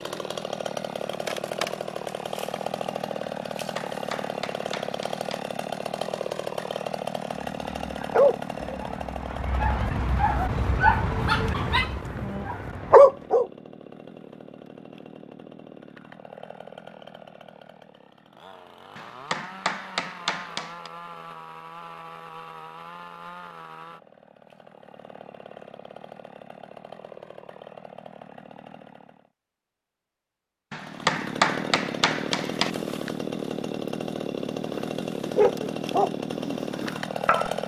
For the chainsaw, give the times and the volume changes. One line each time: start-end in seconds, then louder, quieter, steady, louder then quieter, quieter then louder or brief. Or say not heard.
0.0-29.3 quieter
30.8-37.6 steady.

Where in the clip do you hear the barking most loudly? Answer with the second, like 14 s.
13 s.